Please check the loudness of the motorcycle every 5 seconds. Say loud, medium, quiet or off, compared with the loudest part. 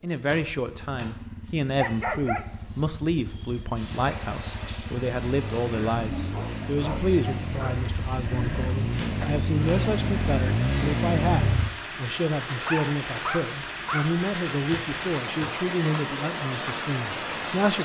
quiet, medium, loud, off.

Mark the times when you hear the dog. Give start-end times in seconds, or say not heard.
1.8-3.6, 6.1-7.9, 12.4-14.1.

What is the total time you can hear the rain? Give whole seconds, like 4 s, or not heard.
14 s.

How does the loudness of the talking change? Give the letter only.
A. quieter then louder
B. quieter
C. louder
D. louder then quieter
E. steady
E.